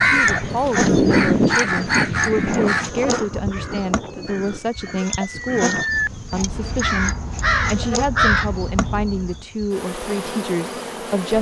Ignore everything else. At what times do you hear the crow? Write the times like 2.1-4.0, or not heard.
0.0-9.4.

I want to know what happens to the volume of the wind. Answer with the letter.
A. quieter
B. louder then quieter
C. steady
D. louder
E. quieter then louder
A.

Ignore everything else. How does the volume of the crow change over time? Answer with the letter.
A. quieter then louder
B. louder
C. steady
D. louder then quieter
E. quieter
A.